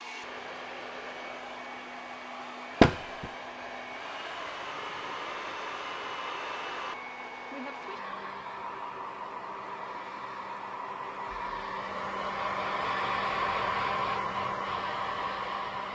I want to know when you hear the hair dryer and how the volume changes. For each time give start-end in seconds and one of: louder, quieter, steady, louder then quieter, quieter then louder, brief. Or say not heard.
0.0-15.9 louder.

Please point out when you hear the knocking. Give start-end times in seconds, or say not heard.
2.8-3.3.